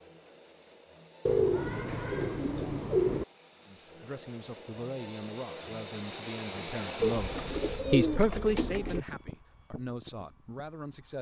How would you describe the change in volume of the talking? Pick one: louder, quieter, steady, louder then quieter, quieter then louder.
louder then quieter.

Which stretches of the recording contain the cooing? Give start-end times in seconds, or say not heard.
1.2-3.2, 7.0-9.0.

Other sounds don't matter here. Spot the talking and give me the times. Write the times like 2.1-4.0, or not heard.
3.6-11.1.